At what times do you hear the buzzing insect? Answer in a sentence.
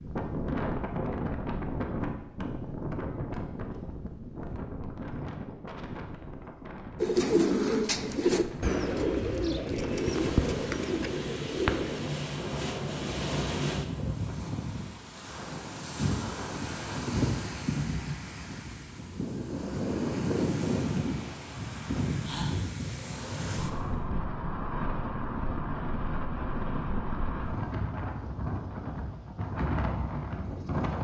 You can't hear the buzzing insect here.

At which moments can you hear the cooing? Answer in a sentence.
You can hear the cooing from 7.0 to 12.1 s.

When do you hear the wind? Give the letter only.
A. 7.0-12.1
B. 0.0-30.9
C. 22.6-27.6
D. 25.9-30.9
B.